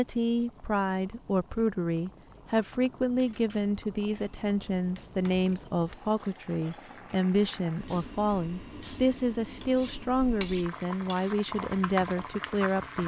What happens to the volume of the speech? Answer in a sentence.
The volume of the speech stays about the same.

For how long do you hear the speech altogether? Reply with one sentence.
You can hear the speech for 13 seconds altogether.